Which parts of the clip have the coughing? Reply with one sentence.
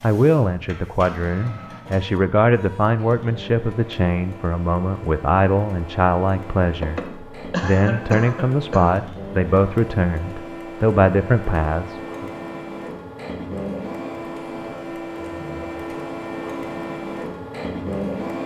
You can hear the coughing from 6.8 to 8.9 s.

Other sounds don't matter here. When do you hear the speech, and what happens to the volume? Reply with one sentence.
You can hear the speech from 0.0 to 12.3 s, at a steady volume.